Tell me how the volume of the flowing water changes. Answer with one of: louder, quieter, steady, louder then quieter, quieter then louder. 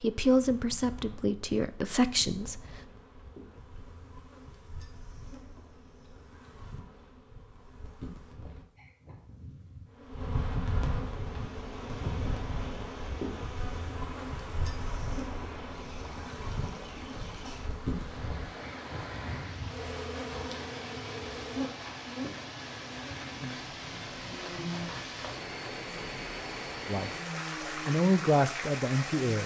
louder.